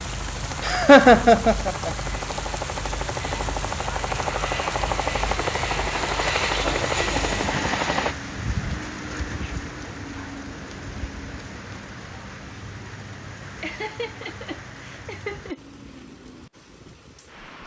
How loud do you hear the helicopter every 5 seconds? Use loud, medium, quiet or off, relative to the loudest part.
medium, loud, off, off.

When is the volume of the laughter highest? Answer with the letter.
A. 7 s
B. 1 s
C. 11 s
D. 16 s
B.